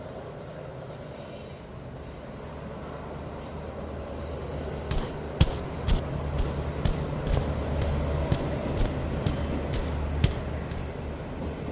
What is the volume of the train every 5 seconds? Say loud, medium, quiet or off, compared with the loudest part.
medium, loud, loud.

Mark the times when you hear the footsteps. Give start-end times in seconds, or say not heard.
4.9-10.8.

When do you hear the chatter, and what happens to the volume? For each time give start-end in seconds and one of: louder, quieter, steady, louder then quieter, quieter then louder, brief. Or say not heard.
not heard.